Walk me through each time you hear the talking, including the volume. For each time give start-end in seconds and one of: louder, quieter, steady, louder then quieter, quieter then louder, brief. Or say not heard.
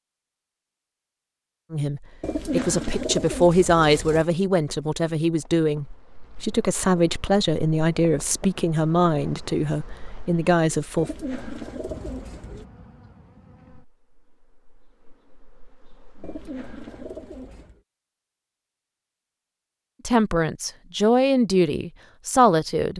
1.7-11.1 steady
20.1-22.9 brief.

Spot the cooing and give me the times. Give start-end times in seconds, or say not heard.
2.2-4.2, 10.9-12.7, 16.2-17.8.